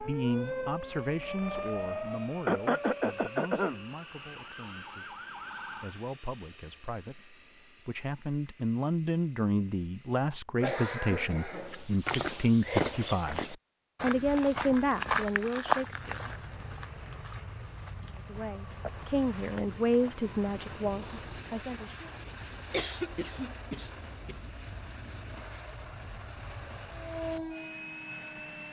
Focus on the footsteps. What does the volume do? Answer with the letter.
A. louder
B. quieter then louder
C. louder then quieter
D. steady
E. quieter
E.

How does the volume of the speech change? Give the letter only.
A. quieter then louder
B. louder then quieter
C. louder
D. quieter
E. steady
A.